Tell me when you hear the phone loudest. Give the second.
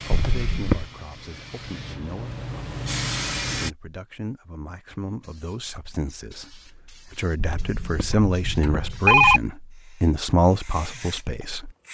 9 s.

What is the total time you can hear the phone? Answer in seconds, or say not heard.
3 s.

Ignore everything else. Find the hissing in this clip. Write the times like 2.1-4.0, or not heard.
0.0-3.7, 5.2-11.8.